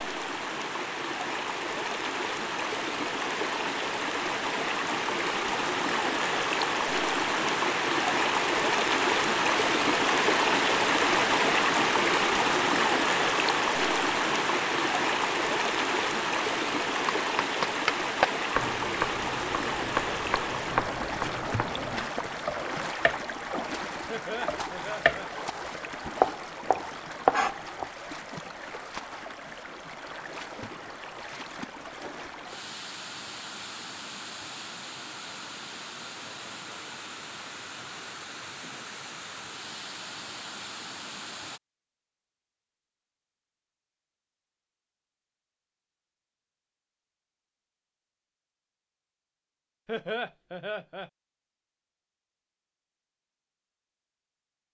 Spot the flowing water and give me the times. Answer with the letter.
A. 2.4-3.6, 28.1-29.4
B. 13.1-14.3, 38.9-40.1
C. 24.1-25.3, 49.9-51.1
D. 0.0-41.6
D.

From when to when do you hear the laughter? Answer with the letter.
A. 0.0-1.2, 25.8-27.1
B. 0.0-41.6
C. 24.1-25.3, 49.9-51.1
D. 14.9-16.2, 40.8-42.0
C.